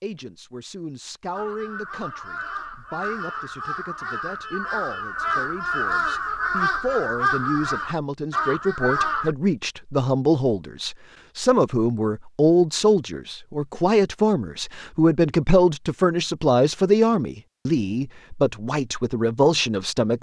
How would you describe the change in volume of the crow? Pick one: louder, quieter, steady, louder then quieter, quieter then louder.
louder.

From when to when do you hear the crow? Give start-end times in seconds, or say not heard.
1.3-9.3.